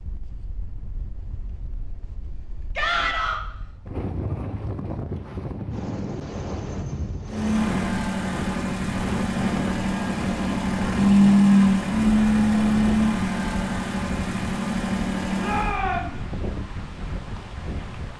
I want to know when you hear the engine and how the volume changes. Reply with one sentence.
The engine can be heard from 7.2 to 15.8 s, getting louder then quieter.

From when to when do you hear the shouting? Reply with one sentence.
You can hear the shouting from 2.8 to 3.4 s and from 15.4 to 16.1 s.